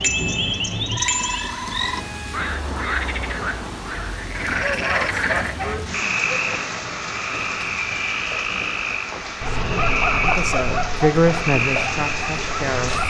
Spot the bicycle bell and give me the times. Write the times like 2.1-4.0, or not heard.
0.0-1.6.